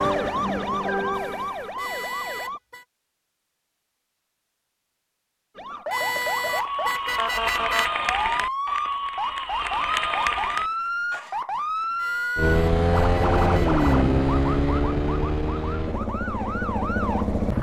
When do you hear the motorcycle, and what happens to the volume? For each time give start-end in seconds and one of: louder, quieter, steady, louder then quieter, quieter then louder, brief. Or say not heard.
12.3-17.5 quieter.